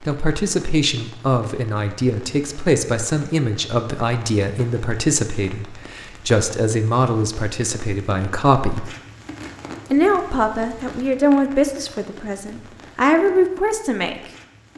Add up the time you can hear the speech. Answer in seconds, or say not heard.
13 s.